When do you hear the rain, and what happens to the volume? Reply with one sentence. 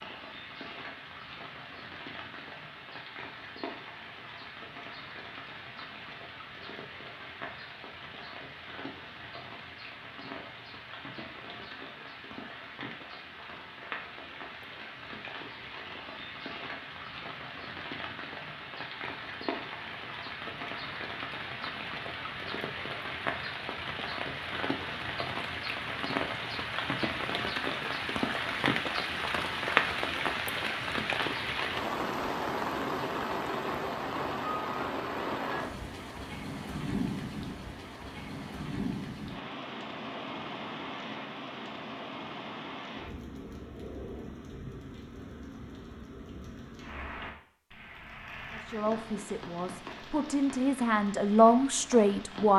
The rain can be heard from 0.0 to 52.5 s, getting louder then quieter.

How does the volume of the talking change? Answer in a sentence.
The volume of the talking goes up.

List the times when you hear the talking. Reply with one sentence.
You can hear the talking from 48.5 to 52.5 s.